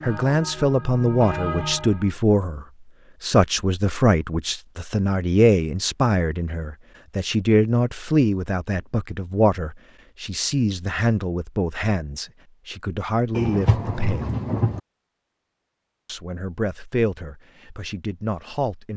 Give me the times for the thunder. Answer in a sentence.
You can hear the thunder from 13.3 to 14.8 s.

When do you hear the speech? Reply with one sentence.
You can hear the speech from 0.0 to 14.4 s and from 16.1 to 18.9 s.